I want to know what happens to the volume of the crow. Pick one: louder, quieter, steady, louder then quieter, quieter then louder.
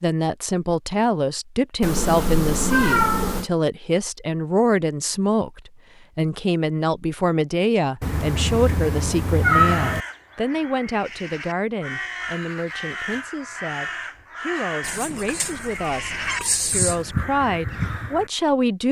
louder.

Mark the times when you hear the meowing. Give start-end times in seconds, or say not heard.
1.8-3.5, 8.0-10.0, 14.8-17.1.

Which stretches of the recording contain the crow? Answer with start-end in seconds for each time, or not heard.
9.5-18.5.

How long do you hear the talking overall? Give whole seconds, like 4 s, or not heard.
19 s.